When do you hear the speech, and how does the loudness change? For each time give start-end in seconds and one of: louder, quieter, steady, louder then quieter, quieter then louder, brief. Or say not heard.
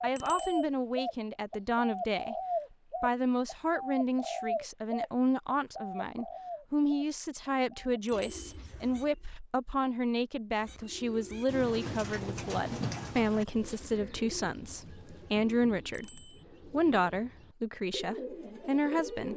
0.0-2.4 brief
3.0-19.3 steady.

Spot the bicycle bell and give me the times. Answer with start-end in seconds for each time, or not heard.
0.1-0.7, 8.1-8.6, 15.9-16.4.